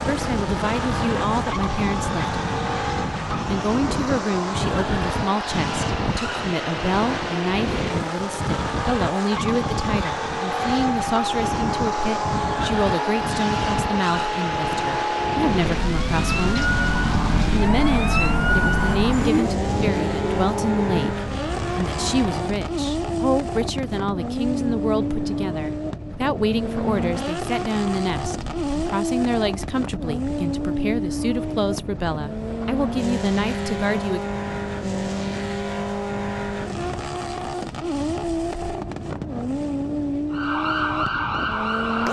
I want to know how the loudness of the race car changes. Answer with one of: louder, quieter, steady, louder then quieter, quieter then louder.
steady.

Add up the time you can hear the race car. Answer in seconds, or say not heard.
42 s.